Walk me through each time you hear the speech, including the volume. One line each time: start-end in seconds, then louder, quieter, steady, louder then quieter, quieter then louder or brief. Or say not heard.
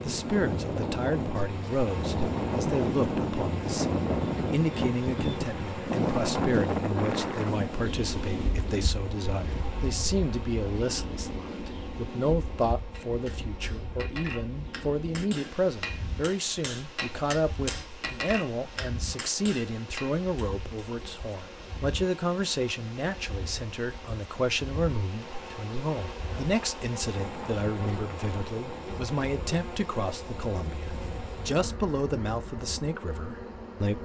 0.0-33.9 steady.